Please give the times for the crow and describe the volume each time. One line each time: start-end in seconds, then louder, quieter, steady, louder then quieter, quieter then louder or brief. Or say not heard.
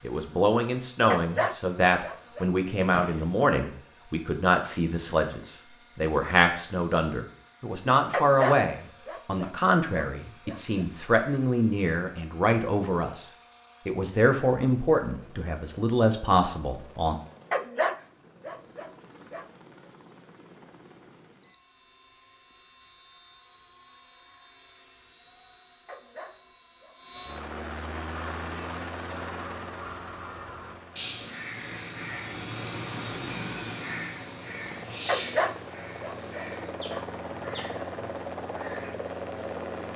28.0-39.0 louder then quieter.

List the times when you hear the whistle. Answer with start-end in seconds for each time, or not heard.
not heard.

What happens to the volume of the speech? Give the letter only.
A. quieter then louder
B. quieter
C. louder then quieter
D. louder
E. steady
E.